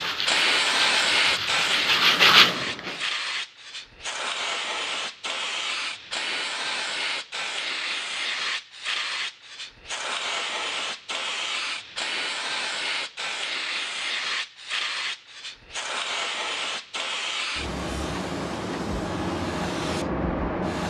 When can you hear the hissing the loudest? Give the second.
1 s.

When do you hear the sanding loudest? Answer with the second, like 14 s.
2 s.